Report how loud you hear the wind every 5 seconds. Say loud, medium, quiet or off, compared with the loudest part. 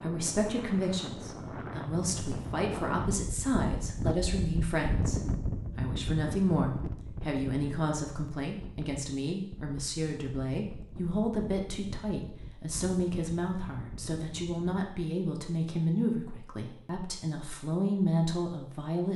loud, loud, medium, off.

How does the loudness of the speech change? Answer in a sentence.
The loudness of the speech stays about the same.